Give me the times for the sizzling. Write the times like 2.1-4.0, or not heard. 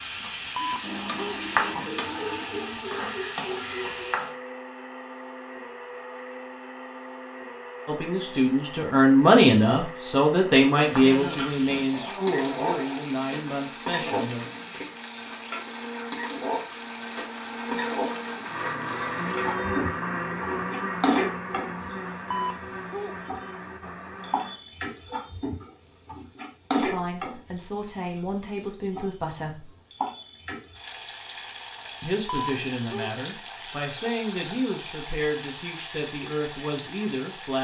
0.0-4.3, 10.8-37.5.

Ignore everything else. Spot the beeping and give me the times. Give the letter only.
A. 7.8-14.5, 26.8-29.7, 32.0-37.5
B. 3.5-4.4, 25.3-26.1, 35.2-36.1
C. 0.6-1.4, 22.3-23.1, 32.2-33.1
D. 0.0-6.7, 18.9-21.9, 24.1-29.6
C.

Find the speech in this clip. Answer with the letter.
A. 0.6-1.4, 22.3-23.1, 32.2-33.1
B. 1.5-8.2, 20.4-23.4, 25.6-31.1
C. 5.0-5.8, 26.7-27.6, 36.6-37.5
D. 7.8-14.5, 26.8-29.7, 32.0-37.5
D.